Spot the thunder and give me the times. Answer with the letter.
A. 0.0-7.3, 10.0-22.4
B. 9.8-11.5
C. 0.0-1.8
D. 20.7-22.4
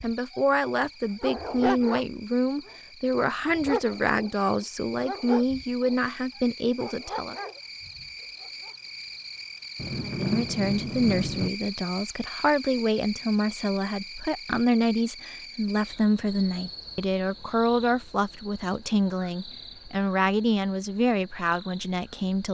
B.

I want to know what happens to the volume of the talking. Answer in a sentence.
The volume of the talking stays about the same.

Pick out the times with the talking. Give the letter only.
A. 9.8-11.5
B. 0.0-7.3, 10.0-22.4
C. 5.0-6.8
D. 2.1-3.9
B.